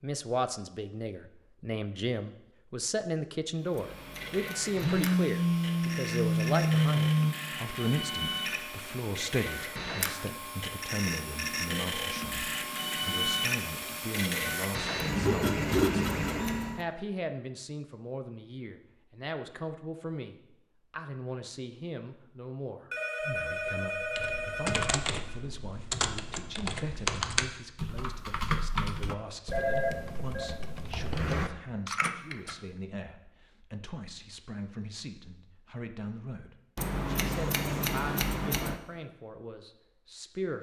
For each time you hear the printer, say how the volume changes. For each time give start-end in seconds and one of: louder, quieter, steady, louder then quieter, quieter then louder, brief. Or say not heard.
3.5-16.9 louder.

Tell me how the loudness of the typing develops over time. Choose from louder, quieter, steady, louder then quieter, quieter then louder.
quieter then louder.